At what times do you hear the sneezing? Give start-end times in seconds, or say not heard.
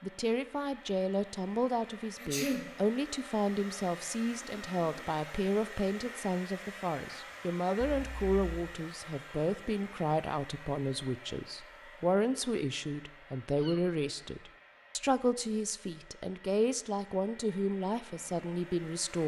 2.1-2.6, 7.8-8.7, 13.6-14.0.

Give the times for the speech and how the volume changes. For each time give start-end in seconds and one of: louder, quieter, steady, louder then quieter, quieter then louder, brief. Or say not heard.
0.0-19.2 steady.